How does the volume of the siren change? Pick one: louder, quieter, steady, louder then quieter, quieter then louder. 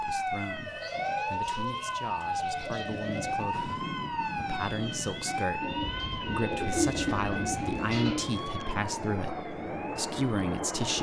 quieter.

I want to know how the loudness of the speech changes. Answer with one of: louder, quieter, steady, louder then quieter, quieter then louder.
louder.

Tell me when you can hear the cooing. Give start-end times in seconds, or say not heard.
0.7-3.4, 5.6-8.3.